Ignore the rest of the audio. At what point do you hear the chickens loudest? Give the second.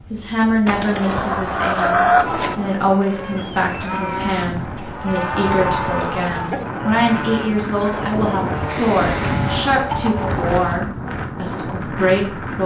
2 s.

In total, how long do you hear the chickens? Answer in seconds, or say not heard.
6 s.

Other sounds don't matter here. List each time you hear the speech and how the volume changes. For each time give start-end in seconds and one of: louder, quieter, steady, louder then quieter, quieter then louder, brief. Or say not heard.
0.1-12.6 steady.